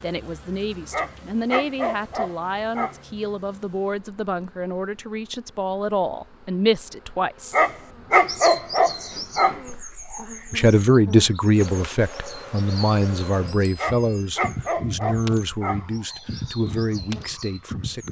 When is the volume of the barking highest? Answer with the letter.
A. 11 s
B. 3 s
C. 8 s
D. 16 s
C.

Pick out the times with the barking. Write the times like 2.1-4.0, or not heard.
0.9-3.0, 7.5-9.6, 13.8-15.8.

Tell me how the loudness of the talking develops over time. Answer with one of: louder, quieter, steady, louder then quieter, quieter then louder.
louder then quieter.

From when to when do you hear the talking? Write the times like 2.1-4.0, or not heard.
0.0-7.5, 9.7-18.0.